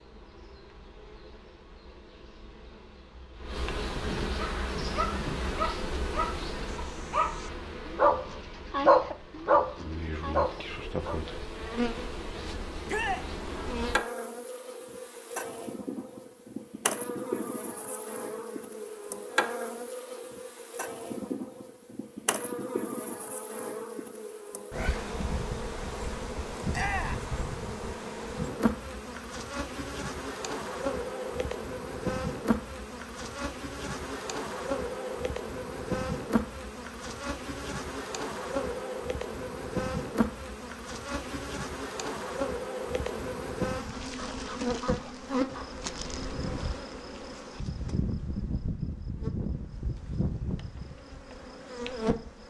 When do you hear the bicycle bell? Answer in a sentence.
The bicycle bell can't be heard in this clip.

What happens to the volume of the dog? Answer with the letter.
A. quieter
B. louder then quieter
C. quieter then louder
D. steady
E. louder
B.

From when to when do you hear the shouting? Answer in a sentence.
The shouting can be heard from 12.8 to 13.3 s and from 26.7 to 27.2 s.